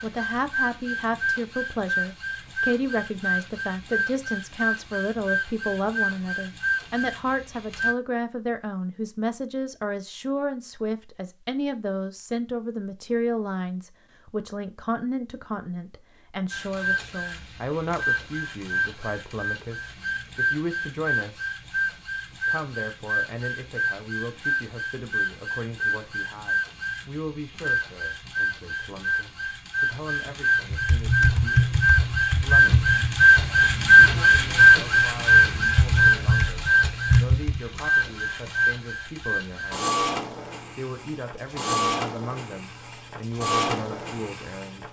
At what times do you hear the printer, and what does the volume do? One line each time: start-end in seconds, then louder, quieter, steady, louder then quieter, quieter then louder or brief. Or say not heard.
0.0-8.0 steady
16.5-44.8 louder then quieter.